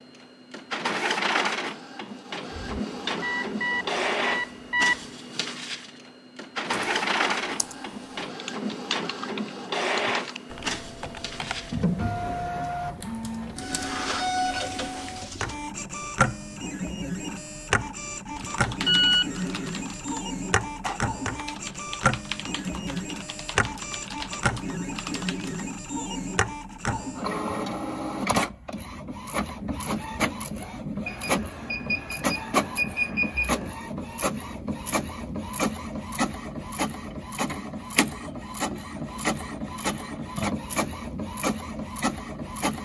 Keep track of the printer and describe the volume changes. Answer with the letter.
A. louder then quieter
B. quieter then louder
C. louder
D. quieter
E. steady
E.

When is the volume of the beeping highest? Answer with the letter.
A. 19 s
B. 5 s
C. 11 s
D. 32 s
A.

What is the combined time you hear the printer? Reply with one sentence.
The printer can be heard for 43 seconds in total.